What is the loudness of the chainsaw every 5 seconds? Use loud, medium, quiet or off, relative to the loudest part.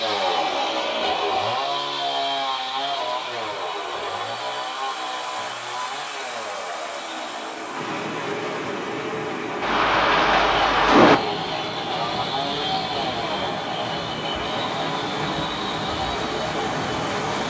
loud, medium, loud, medium.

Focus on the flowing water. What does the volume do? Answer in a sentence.
The volume of the flowing water goes up.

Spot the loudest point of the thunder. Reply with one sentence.
The volume of the thunder peaks at 11 seconds.